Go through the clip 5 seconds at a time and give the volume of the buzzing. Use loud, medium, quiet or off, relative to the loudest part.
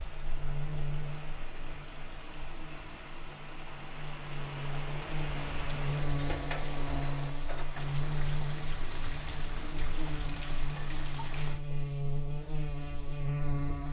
medium, loud, loud.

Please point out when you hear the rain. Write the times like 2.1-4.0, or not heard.
0.0-11.6.